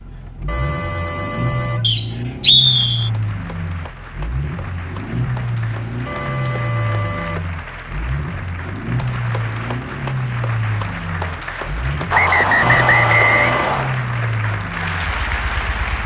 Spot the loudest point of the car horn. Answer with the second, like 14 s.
13 s.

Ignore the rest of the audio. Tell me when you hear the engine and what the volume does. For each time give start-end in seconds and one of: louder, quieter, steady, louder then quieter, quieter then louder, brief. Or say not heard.
0.0-16.0 steady.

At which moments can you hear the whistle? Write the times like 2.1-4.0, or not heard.
1.8-3.1, 12.1-13.9.